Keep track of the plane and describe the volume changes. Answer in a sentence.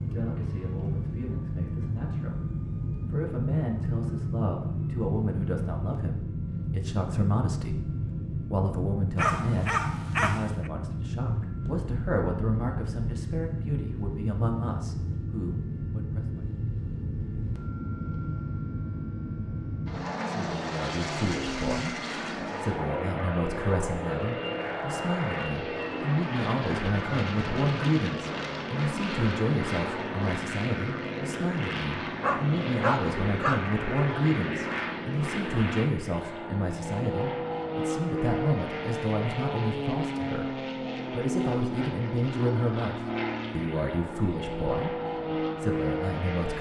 The volume of the plane stays about the same.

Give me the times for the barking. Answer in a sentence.
You can hear the barking from 9.2 to 10.7 s and from 32.2 to 33.6 s.